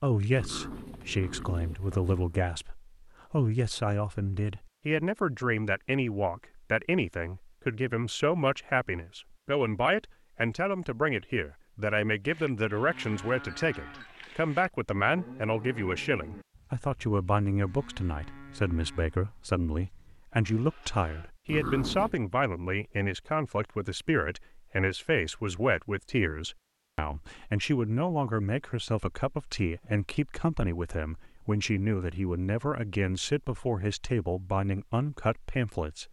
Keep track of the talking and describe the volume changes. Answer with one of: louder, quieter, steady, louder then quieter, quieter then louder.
steady.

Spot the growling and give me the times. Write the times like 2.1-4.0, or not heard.
0.3-2.4, 21.4-22.1.